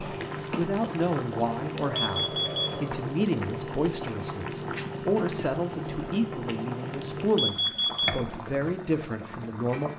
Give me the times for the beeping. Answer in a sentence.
The beeping can be heard from 1.9 to 2.6 s and from 7.3 to 8.2 s.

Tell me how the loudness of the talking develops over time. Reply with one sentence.
The loudness of the talking stays about the same.